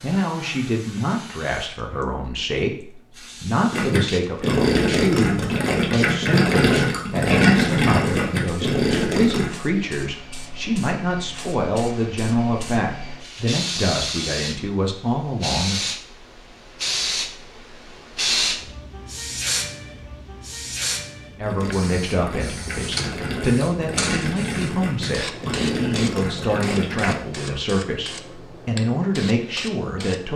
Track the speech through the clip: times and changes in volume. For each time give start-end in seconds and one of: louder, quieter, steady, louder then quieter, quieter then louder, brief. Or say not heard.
0.0-15.8 steady
21.4-30.3 steady.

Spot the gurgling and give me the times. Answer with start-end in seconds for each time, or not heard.
3.7-9.5, 21.4-27.1.